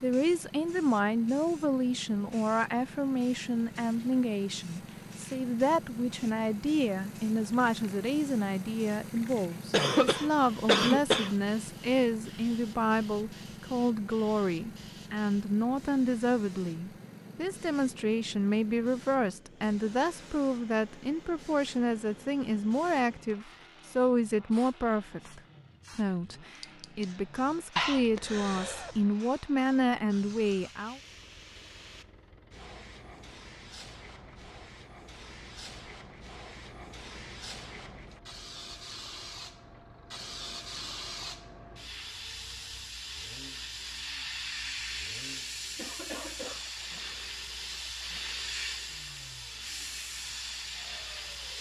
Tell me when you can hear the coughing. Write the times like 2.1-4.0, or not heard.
9.7-11.3, 27.8-28.9, 45.8-46.6.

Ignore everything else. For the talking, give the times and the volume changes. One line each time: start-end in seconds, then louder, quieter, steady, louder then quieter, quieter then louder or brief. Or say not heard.
0.0-31.0 steady.